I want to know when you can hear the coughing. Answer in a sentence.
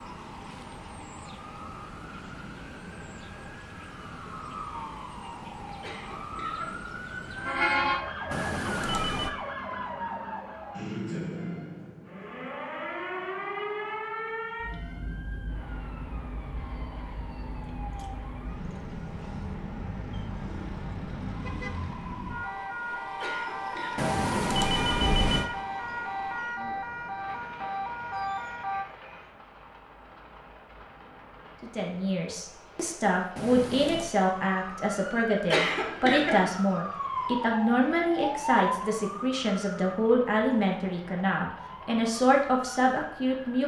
The coughing can be heard from 5.8 to 6.8 s, from 23.2 to 24.1 s and from 35.5 to 36.5 s.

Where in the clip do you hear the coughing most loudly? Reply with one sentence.
The volume of the coughing peaks at 36 seconds.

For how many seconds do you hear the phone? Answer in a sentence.
You can hear the phone for 3 seconds altogether.